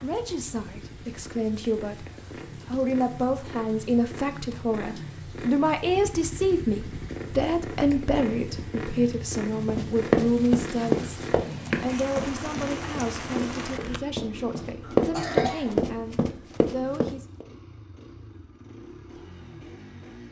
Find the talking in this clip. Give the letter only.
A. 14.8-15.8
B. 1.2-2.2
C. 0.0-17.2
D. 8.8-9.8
C.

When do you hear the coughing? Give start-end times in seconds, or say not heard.
14.8-15.8.